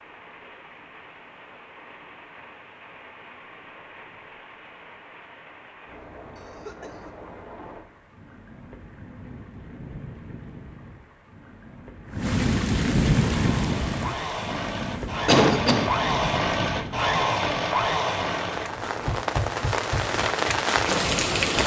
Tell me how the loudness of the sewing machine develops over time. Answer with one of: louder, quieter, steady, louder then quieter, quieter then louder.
louder then quieter.